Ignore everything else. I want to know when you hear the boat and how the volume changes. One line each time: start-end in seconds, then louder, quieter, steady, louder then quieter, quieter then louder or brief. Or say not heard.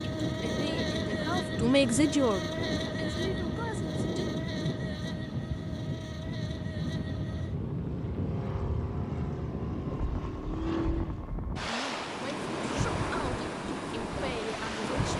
0.0-11.3 quieter then louder.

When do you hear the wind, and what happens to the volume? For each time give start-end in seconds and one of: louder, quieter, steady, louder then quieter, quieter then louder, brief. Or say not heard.
0.0-15.1 steady.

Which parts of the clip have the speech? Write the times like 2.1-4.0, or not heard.
0.2-4.2, 11.7-15.1.